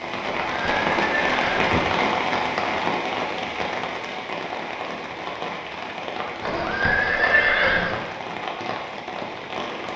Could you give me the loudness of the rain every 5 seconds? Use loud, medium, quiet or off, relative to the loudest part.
loud, medium.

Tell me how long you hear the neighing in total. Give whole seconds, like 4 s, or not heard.
3 s.